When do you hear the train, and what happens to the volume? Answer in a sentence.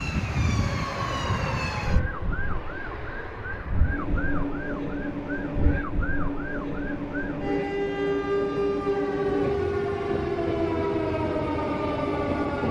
You can hear the train from 0.0 to 12.6 s, at a steady volume.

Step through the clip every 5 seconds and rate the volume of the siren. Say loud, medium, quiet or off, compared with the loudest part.
medium, loud, loud.